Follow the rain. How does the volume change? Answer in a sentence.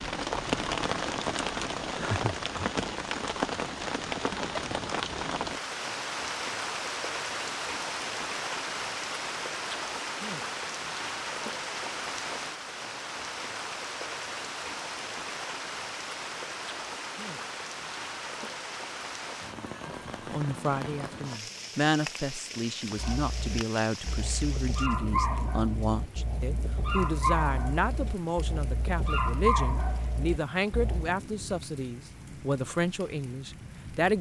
The loudness of the rain goes down.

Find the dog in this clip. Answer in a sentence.
You can hear the dog from 22.9 to 31.1 s.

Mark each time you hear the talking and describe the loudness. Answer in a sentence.
You can hear the talking from 19.9 to 34.1 s, at a steady volume.